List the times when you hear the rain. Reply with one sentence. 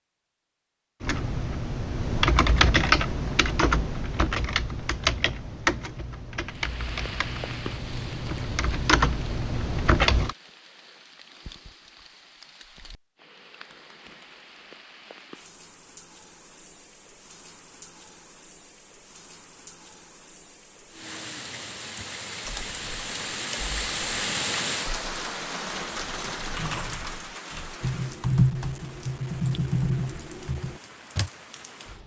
The rain can be heard from 6.5 to 32.0 s.